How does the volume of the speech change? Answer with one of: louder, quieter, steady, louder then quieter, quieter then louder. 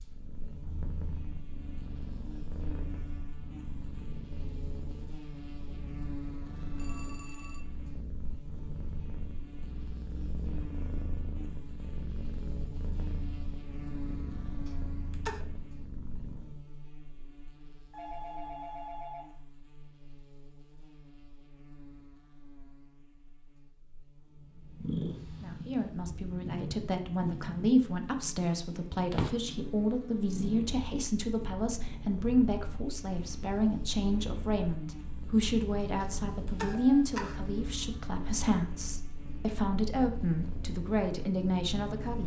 steady.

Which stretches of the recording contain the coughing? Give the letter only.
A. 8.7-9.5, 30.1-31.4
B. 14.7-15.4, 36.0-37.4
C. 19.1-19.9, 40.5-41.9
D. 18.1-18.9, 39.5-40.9
B.